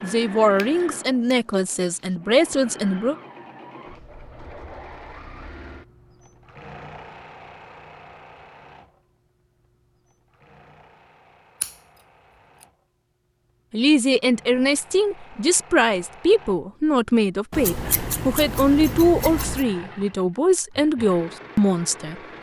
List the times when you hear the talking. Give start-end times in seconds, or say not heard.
0.0-3.1, 13.7-22.1.